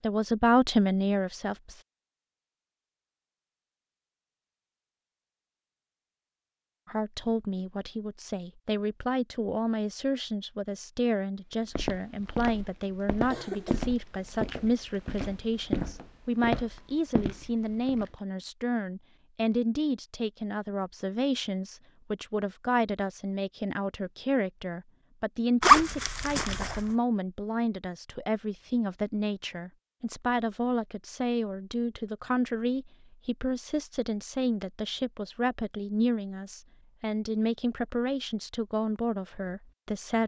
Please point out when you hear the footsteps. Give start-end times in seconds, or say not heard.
11.7-18.1.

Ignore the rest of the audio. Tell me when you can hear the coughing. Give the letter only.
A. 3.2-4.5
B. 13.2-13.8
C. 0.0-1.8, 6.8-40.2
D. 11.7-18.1
B.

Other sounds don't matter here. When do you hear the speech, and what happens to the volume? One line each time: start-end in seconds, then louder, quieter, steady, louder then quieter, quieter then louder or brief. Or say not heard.
0.0-1.8 brief
6.8-40.2 steady.